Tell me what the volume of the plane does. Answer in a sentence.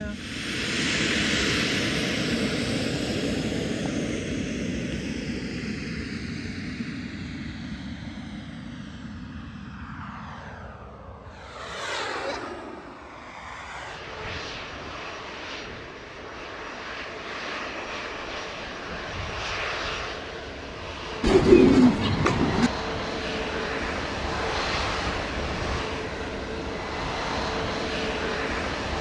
The loudness of the plane goes down, then up.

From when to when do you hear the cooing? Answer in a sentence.
The cooing can be heard from 21.2 to 22.7 s.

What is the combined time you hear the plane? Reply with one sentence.
You can hear the plane for 29 seconds altogether.